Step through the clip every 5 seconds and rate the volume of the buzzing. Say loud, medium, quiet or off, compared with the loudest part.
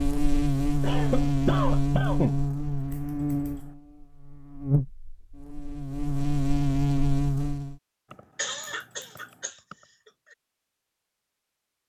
loud, loud, off.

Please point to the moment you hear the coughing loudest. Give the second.
2 s.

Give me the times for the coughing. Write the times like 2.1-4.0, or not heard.
0.8-2.4, 8.1-10.3.